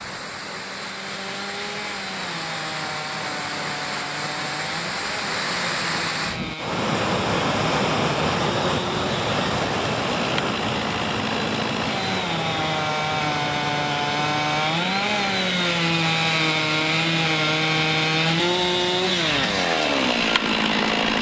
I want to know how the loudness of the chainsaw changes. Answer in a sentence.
The loudness of the chainsaw goes up.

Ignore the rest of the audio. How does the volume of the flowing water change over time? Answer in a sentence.
The loudness of the flowing water goes up, then down.